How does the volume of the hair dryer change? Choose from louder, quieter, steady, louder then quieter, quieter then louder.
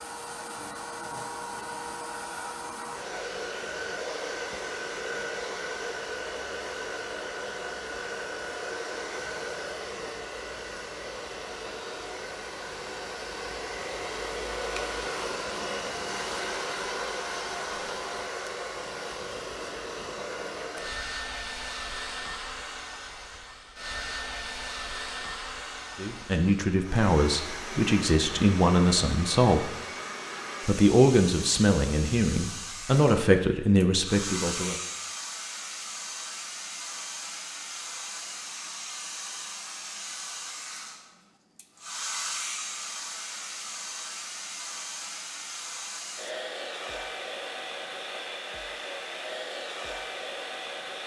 steady.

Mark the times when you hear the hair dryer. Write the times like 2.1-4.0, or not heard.
0.0-51.0.